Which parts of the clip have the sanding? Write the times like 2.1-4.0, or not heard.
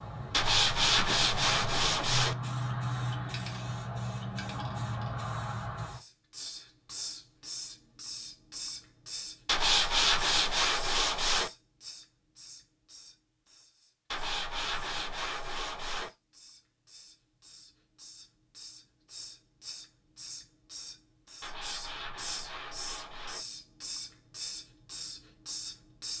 0.3-2.4, 9.4-11.5, 14.1-16.1, 21.4-23.4.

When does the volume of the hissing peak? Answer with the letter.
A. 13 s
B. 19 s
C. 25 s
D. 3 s
D.